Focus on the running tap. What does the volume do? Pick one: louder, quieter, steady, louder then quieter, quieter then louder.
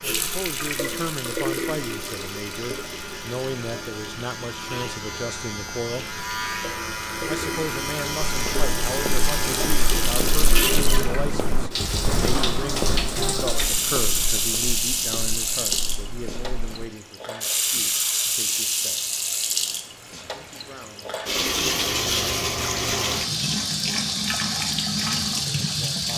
louder.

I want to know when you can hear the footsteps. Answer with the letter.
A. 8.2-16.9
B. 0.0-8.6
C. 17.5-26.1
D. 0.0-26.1
A.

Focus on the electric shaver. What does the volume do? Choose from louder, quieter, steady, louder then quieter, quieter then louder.
louder.